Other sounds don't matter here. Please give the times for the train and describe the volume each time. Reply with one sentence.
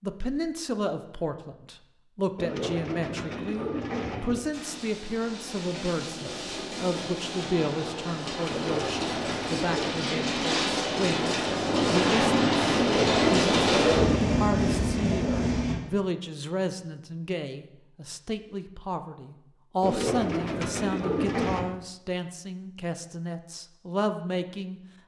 The train can be heard from 4.5 to 15.8 s, getting louder.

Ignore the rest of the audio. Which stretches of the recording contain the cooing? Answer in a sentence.
You can hear the cooing from 2.4 to 4.5 s, from 8.5 to 10.0 s, from 12.7 to 14.3 s and from 19.8 to 21.8 s.